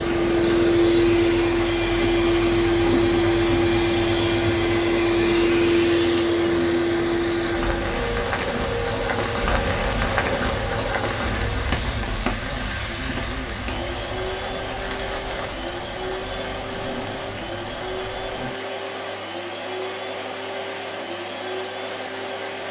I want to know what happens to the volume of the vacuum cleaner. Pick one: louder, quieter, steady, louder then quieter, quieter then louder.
quieter.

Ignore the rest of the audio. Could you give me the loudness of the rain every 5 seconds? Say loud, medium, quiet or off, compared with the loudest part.
medium, loud, loud, medium, medium.